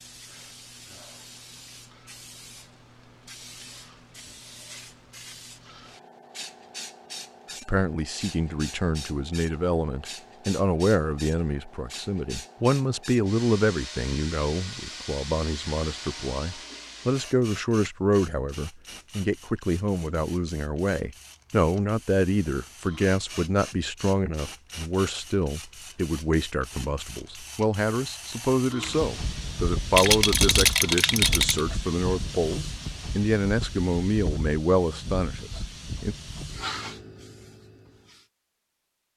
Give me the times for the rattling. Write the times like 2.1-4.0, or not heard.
29.9-31.6.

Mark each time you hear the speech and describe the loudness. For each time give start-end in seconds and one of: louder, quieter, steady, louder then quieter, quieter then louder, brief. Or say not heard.
7.7-36.1 steady.